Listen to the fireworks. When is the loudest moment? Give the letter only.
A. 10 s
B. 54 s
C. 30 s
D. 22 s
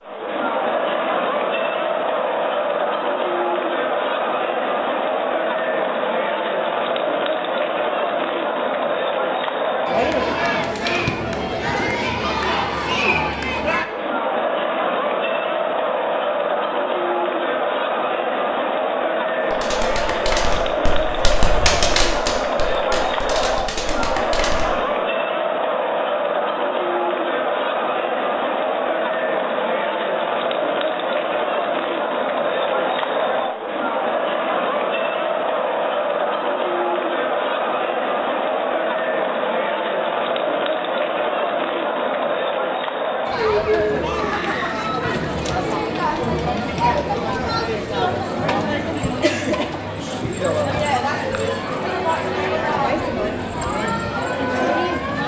D.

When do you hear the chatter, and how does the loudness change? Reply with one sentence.
The chatter can be heard from 0.0 to 55.2 s, at a steady volume.